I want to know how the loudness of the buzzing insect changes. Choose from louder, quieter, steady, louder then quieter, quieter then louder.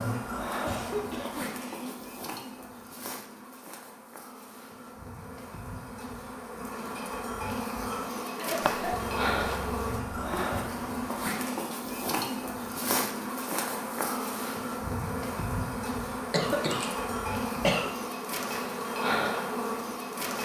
louder.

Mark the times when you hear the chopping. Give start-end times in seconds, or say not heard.
8.6-10.5.